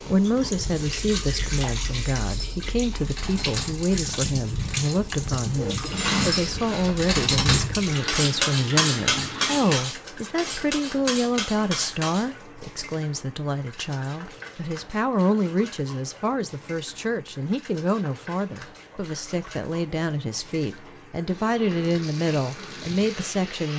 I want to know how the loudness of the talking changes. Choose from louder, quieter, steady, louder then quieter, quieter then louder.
steady.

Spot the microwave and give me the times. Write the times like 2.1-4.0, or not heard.
not heard.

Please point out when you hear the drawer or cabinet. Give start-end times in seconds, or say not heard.
4.7-7.2.